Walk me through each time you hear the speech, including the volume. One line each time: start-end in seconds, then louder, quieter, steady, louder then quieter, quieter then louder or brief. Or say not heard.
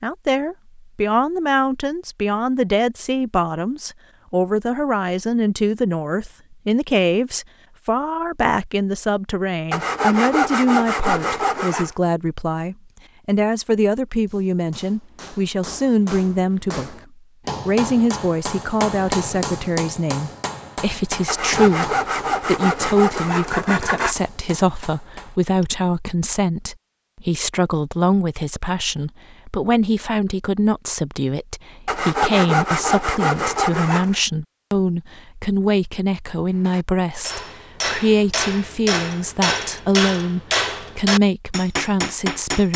0.0-16.9 steady
17.6-42.7 steady.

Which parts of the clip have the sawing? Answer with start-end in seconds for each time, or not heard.
9.7-11.9, 21.2-24.1, 31.9-34.1.